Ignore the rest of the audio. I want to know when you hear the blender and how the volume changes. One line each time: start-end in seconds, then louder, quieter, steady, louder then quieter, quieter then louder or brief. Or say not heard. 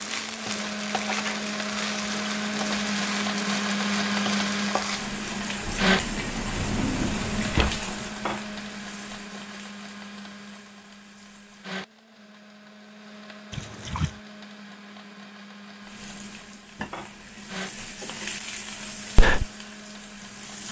0.0-20.6 quieter.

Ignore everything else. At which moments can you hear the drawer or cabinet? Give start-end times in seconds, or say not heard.
6.5-7.9.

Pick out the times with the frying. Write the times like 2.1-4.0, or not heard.
0.0-11.8, 15.8-20.6.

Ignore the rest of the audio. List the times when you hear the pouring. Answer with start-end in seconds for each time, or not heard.
5.6-7.7, 13.5-14.2.